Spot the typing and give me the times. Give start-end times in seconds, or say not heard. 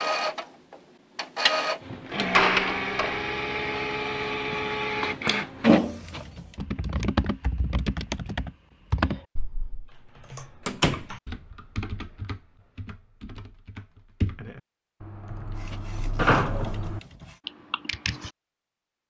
6.5-18.3.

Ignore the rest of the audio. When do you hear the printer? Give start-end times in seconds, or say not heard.
0.0-6.5, 15.6-17.4.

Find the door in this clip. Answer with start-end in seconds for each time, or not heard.
2.1-3.2, 10.7-11.1, 16.1-17.0.